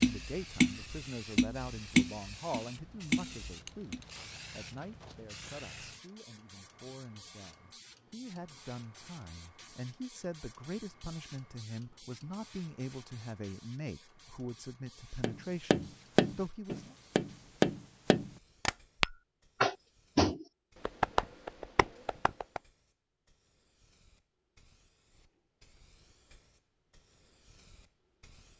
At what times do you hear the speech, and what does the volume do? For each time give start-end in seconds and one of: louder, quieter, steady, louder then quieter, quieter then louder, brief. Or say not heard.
0.0-16.9 quieter then louder.